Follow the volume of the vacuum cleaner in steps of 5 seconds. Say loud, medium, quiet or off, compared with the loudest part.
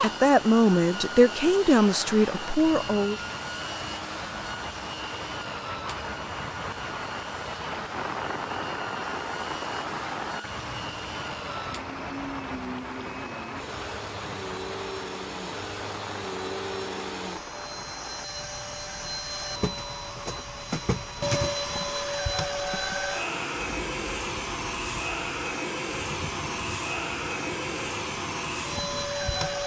medium, medium, medium, medium, loud, loud.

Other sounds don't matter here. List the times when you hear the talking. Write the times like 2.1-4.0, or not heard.
0.0-3.2.